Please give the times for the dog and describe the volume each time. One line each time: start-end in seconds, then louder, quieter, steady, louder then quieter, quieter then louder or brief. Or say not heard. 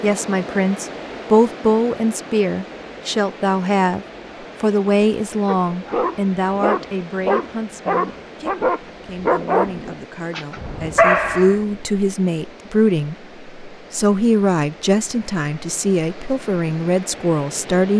5.5-11.6 louder.